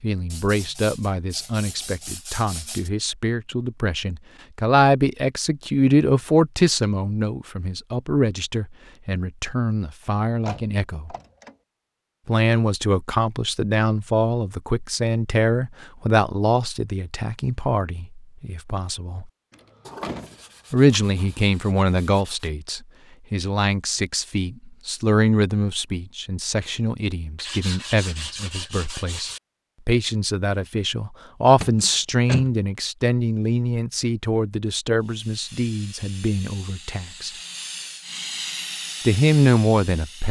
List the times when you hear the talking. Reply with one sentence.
You can hear the talking from 0.0 to 11.2 s, from 12.2 to 19.2 s, from 20.7 to 37.3 s and from 39.0 to 40.2 s.